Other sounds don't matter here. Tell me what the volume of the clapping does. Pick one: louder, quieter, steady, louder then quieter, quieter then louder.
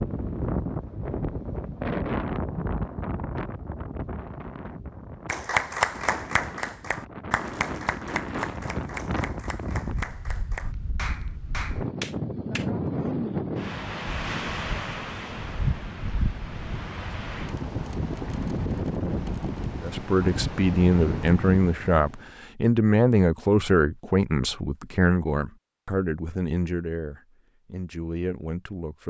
quieter.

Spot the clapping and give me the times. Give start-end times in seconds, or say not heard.
5.2-12.7.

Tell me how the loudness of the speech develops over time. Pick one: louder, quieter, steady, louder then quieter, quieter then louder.
quieter.